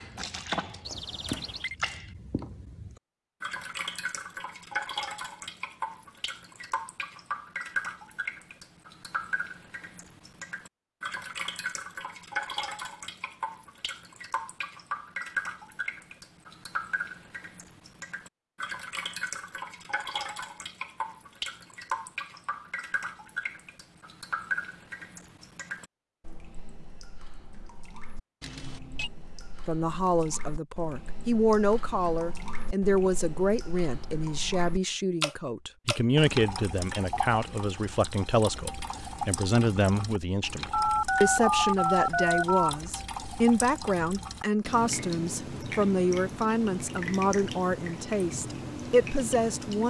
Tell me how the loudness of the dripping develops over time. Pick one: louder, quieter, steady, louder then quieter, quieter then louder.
steady.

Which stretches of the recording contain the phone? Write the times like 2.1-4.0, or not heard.
0.8-1.8, 28.4-29.1, 40.7-42.7.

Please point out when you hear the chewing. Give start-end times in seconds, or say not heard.
not heard.